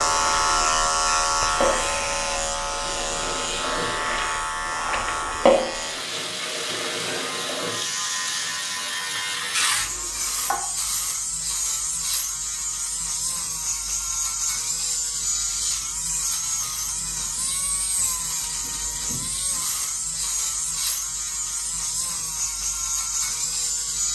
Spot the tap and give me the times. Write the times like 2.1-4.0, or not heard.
0.0-10.6.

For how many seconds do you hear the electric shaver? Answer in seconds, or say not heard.
24 s.